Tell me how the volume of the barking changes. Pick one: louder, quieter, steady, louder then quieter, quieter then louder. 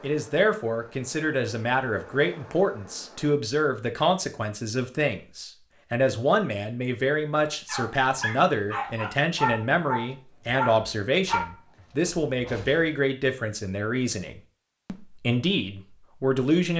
louder then quieter.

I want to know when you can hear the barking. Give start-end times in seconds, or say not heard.
7.5-12.8.